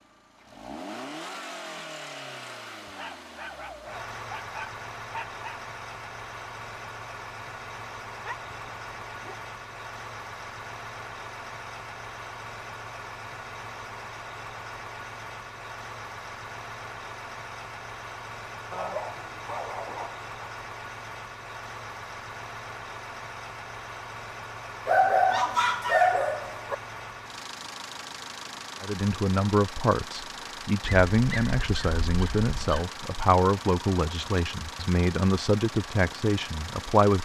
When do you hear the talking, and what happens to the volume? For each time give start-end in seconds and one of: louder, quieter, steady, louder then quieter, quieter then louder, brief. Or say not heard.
28.8-37.2 steady.